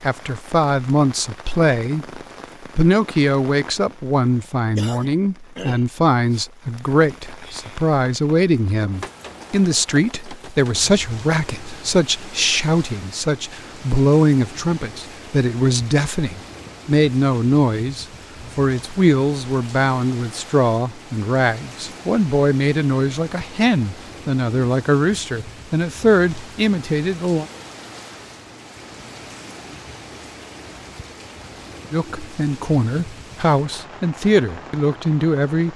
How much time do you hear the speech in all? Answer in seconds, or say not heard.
31 s.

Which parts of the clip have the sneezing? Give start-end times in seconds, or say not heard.
not heard.